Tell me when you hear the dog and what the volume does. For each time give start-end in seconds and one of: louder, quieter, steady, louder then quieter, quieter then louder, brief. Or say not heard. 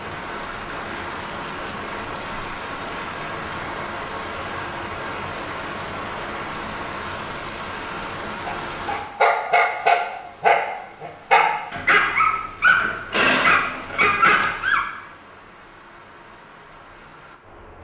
8.4-14.8 steady.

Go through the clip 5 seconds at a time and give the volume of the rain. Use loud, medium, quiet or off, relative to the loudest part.
loud, loud, quiet, quiet.